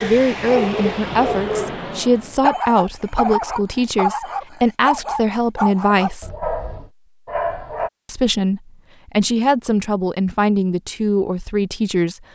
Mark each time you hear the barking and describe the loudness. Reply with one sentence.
The barking can be heard from 0.0 to 7.9 s, at a steady volume.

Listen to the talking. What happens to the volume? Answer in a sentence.
The volume of the talking stays about the same.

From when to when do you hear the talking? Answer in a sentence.
You can hear the talking from 0.0 to 6.3 s and from 8.1 to 12.2 s.